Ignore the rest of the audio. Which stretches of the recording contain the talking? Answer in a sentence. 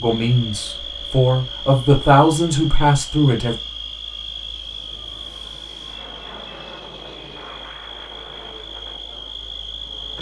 You can hear the talking from 0.0 to 3.5 s.